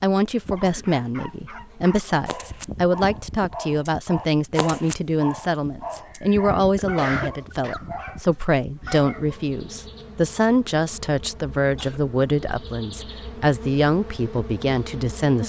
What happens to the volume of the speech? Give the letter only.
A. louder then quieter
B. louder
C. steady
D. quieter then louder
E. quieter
C.